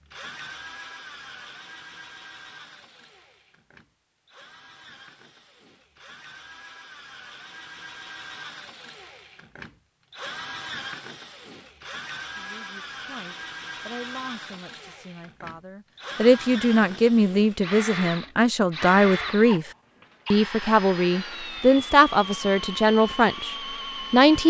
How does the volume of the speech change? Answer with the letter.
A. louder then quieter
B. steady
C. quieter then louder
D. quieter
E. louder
E.